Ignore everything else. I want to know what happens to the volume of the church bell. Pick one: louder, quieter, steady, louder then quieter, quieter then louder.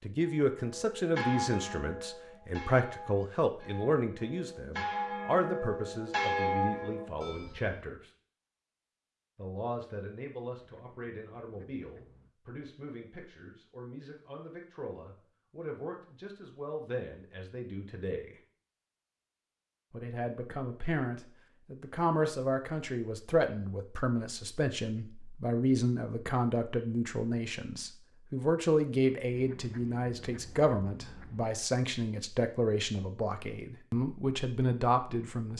quieter then louder.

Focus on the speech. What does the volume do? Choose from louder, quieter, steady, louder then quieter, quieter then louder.
quieter then louder.